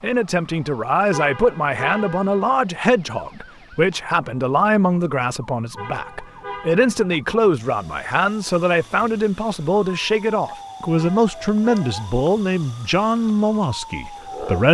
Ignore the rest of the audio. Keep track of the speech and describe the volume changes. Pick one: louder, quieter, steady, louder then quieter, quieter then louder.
steady.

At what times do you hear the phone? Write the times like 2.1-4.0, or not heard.
not heard.